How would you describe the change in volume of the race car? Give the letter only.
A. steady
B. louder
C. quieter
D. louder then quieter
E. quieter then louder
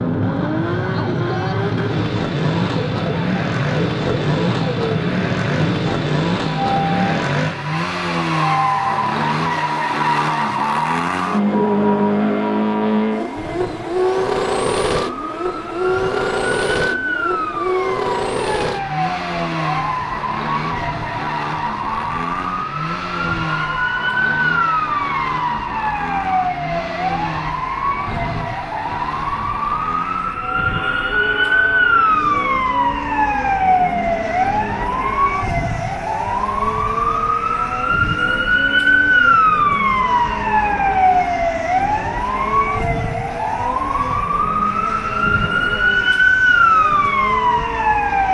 C.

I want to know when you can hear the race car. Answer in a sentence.
The race car can be heard from 0.0 to 48.3 s.